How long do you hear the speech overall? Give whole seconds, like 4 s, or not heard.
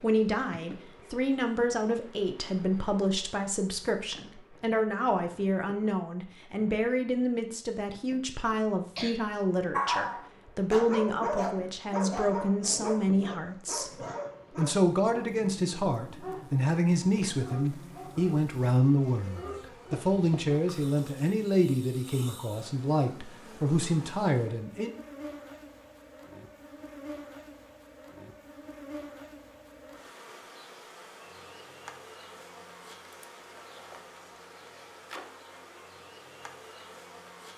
25 s.